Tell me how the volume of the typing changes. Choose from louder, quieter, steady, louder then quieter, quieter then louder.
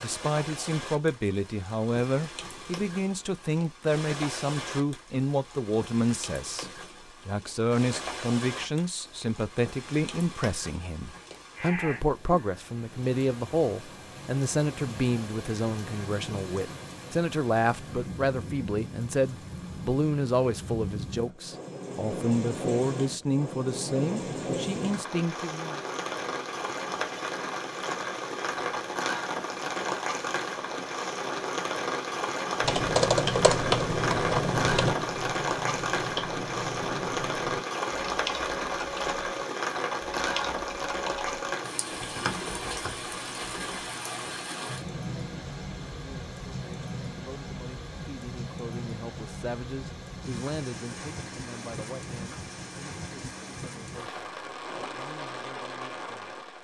quieter.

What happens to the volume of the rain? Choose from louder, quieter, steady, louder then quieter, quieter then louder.
louder then quieter.